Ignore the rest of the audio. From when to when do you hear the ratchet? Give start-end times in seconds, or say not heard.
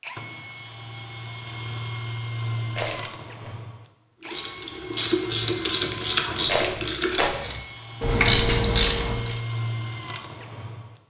4.2-9.4.